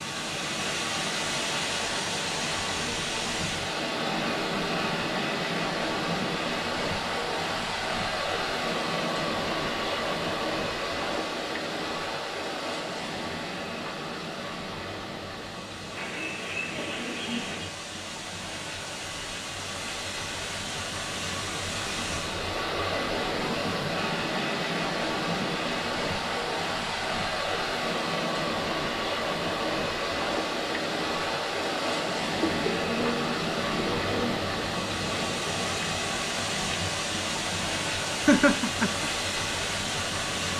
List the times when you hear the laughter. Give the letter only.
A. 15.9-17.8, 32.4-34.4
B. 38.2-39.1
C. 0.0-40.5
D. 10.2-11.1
B.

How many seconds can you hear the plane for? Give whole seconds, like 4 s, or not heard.
not heard.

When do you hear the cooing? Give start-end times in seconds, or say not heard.
15.9-17.8, 32.4-34.4.